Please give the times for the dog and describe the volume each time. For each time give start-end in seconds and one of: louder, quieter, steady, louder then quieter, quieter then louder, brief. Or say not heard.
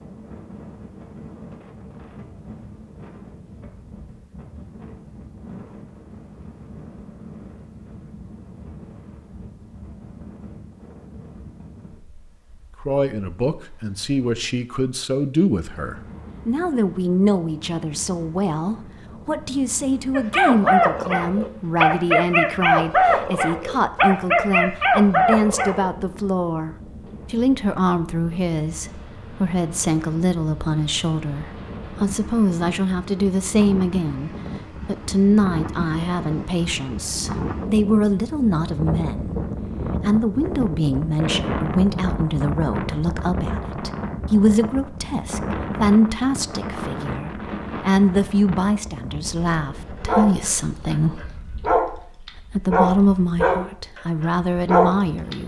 20.1-25.9 steady
50.0-55.4 louder.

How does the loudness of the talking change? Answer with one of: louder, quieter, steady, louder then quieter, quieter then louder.
steady.